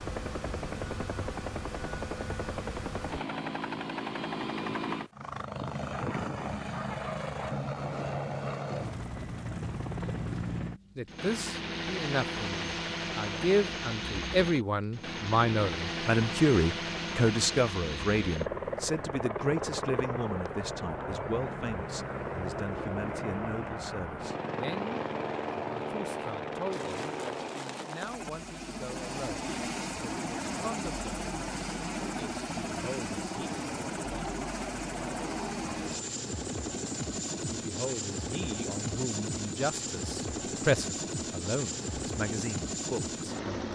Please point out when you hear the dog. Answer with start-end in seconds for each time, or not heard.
5.9-7.7.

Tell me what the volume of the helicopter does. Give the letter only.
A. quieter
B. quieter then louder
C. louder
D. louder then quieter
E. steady
E.